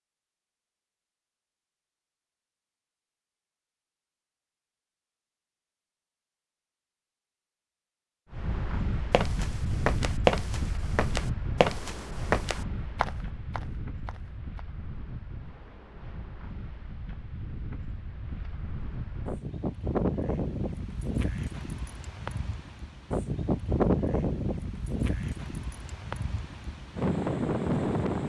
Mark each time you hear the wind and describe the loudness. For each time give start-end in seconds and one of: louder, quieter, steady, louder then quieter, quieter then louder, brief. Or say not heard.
8.3-28.2 quieter then louder.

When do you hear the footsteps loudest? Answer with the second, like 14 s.
10 s.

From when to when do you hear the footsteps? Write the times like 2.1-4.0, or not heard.
9.1-14.6.